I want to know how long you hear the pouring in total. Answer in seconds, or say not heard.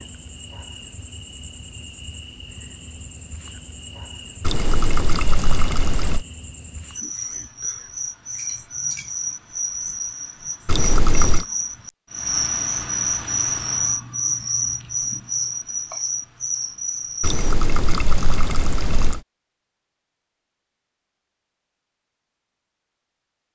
5 s.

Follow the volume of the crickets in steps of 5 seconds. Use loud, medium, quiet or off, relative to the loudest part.
quiet, medium, loud, loud, off.